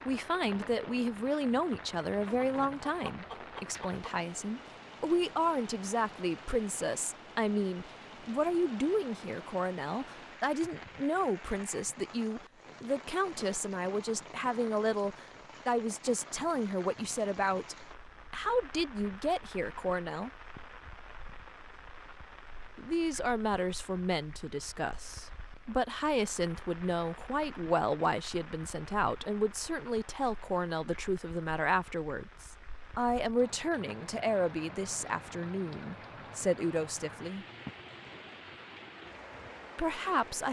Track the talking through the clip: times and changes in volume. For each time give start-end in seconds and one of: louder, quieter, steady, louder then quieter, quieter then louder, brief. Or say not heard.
0.1-20.3 steady
22.8-37.5 steady
39.8-40.4 brief.